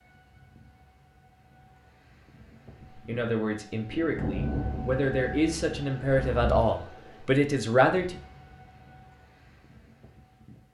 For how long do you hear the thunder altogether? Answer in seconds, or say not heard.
3 s.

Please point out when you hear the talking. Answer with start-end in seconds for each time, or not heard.
3.0-8.2.